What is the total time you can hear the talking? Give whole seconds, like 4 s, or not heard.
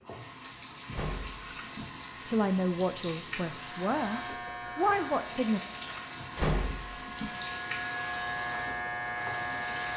3 s.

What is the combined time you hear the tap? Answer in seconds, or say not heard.
10 s.